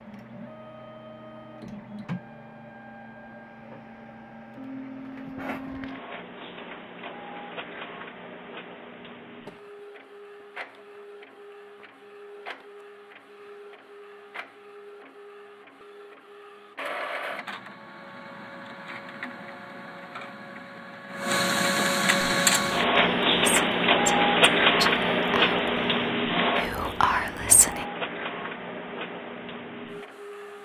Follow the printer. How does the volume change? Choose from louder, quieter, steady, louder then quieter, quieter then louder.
louder.